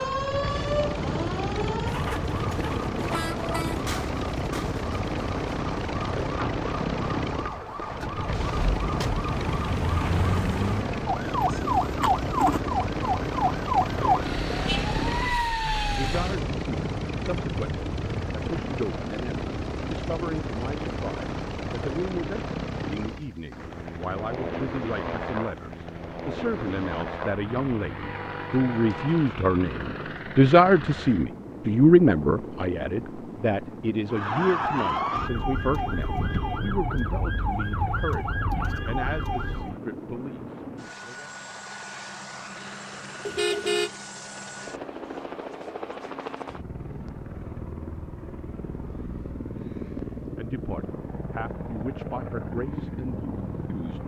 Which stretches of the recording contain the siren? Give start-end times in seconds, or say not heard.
0.0-16.4, 34.1-39.8.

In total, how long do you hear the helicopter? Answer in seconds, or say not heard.
54 s.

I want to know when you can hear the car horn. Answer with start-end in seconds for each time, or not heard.
3.1-3.8, 28.0-29.3, 43.2-43.9.